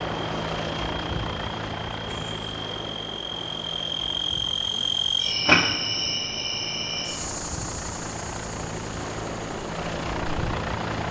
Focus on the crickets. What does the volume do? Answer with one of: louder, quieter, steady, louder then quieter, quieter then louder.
louder then quieter.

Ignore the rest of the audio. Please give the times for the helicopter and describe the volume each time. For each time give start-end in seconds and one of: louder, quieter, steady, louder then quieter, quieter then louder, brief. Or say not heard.
0.0-11.0 quieter then louder.